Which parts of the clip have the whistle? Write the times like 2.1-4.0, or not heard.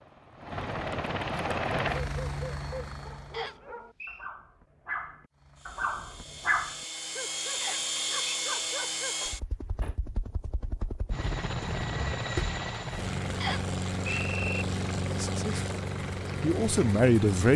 3.3-4.3, 7.6-8.3, 13.4-14.7.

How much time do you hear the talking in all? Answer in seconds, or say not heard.
2 s.